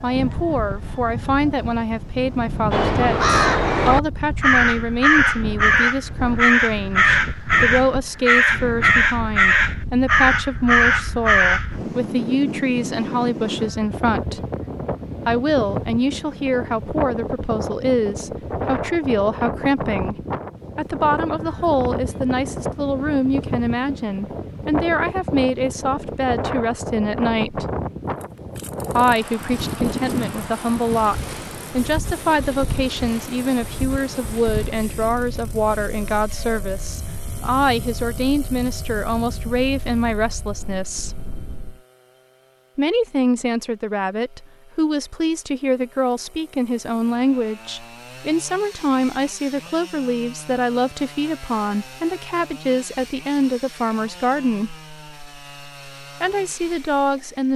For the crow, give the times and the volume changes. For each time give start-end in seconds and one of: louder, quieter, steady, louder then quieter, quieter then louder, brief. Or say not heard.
2.7-11.8 steady.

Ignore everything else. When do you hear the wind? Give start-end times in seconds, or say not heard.
0.0-41.8.